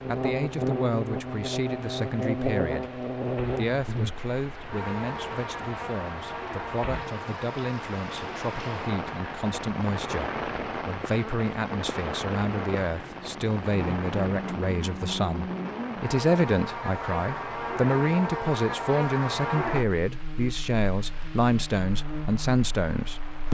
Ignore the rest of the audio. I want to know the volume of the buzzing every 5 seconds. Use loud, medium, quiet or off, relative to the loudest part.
loud, medium, medium, loud, medium.